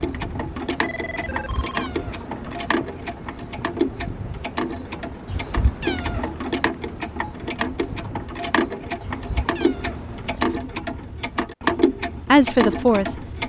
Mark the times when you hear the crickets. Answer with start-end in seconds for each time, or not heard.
0.0-10.4.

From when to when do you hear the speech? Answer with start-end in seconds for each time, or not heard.
12.2-13.2.